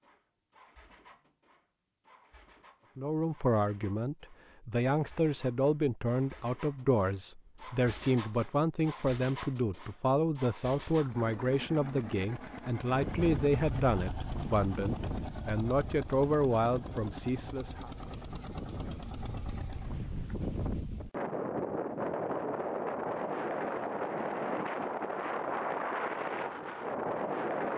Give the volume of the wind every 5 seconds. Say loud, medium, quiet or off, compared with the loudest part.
off, off, medium, medium, loud, loud.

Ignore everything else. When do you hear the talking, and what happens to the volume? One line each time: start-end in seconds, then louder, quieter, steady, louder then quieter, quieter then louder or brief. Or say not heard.
3.0-17.9 steady.